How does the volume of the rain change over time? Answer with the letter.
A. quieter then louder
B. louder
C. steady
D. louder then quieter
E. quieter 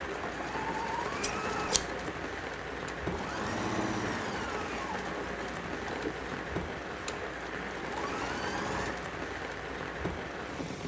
C.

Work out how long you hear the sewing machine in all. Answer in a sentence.
The sewing machine can be heard for 9 seconds in total.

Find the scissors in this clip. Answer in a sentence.
You can hear the scissors from 1.2 to 1.9 s.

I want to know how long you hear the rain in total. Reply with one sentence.
The rain can be heard for 11 seconds in total.